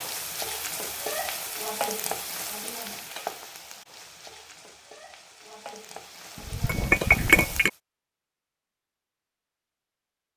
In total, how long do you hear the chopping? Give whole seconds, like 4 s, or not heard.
not heard.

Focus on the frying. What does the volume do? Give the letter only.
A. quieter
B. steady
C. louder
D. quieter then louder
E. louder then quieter
D.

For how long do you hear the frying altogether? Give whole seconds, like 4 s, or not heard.
8 s.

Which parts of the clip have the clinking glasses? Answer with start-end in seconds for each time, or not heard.
6.5-7.7.